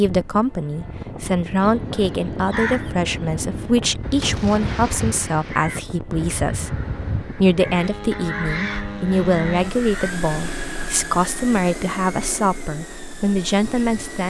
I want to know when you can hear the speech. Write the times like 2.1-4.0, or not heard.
0.0-14.2.